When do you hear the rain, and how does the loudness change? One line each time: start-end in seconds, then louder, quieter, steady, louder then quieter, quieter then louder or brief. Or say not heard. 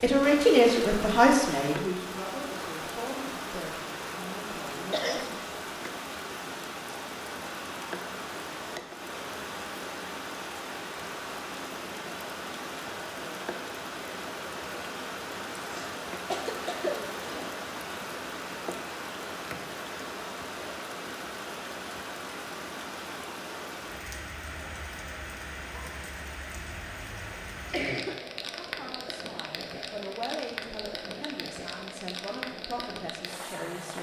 0.0-33.9 steady.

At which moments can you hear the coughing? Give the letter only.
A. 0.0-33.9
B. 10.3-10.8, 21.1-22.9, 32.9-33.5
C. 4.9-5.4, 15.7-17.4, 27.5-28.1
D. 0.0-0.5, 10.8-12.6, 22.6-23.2
C.